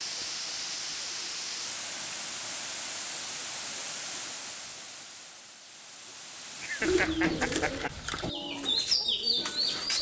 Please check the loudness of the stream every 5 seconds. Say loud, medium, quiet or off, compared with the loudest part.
loud, medium.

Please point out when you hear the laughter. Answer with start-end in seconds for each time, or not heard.
6.6-7.9.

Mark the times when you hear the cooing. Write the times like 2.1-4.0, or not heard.
6.8-9.9.